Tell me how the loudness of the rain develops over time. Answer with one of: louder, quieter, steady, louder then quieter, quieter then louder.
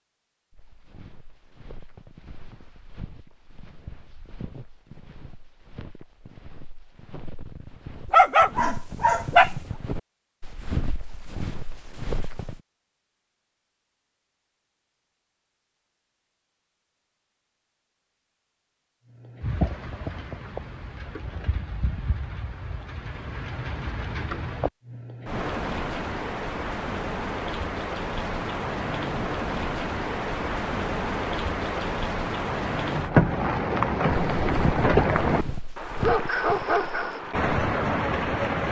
louder.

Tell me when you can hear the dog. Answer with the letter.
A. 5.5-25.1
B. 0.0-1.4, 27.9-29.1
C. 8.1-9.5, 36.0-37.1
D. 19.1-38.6
C.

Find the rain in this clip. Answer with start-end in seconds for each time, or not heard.
19.1-38.6.